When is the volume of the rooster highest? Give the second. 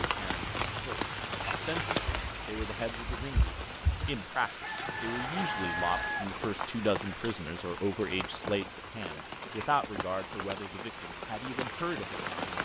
6 s.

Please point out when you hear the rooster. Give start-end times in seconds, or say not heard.
4.5-6.2.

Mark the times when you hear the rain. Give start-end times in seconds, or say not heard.
0.0-12.6.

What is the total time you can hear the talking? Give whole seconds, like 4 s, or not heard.
12 s.